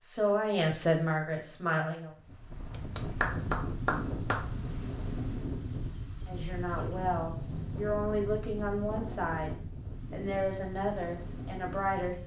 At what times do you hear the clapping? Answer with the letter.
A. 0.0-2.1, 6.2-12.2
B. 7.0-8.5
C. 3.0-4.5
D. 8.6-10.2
C.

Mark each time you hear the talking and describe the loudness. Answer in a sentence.
You can hear the talking briefly from 0.0 to 2.1 s; and from 6.2 to 12.2 s, at a steady volume.